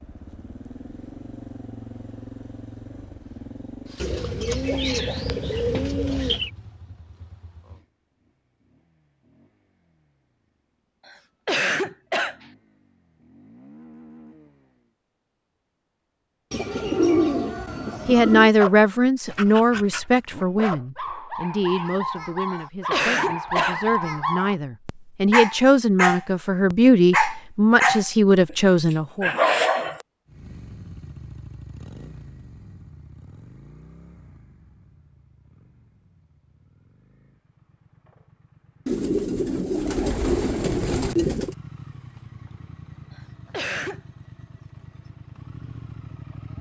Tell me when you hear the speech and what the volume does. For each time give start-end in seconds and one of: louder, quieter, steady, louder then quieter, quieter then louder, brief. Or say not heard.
18.1-29.3 quieter then louder.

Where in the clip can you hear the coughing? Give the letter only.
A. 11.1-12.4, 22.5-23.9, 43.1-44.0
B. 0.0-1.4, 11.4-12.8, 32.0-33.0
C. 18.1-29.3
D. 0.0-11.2
A.